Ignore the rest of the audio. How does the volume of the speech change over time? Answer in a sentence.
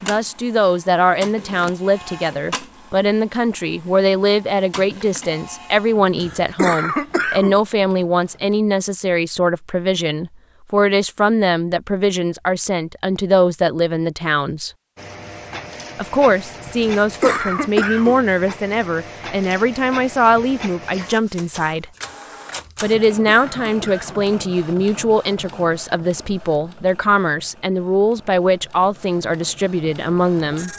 The loudness of the speech stays about the same.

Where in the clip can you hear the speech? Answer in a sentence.
The speech can be heard from 0.0 to 14.7 s, from 15.9 to 21.9 s and from 22.8 to 30.7 s.